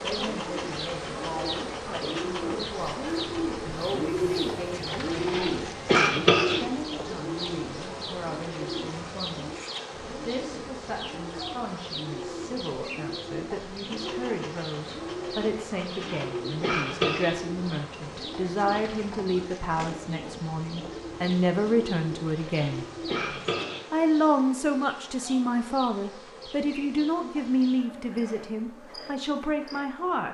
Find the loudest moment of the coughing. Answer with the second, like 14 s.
6 s.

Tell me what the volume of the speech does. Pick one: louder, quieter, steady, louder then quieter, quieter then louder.
louder.